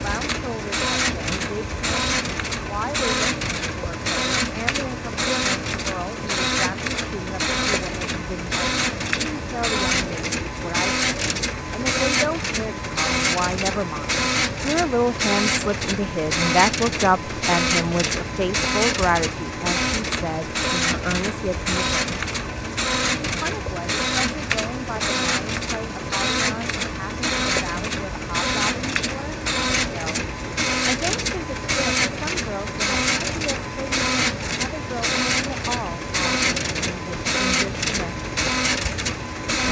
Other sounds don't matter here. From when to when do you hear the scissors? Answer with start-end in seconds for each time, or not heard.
not heard.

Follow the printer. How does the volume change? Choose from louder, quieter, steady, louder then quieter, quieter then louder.
steady.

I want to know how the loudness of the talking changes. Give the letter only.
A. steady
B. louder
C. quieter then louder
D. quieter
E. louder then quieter
E.